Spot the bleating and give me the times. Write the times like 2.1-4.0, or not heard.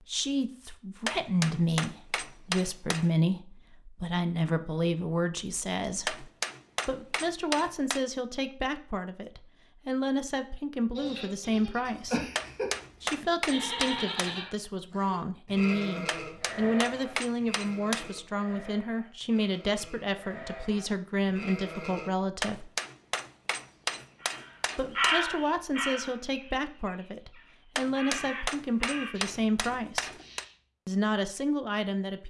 10.9-22.1.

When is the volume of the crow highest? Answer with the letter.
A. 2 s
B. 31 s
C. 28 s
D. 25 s
D.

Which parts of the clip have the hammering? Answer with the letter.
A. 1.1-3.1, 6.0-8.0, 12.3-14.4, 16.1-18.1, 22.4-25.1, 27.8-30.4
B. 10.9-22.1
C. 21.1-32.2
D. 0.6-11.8
A.